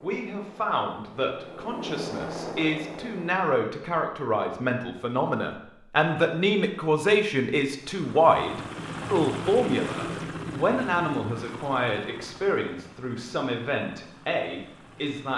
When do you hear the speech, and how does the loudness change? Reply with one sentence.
The speech can be heard from 0.0 to 15.3 s, getting louder then quieter.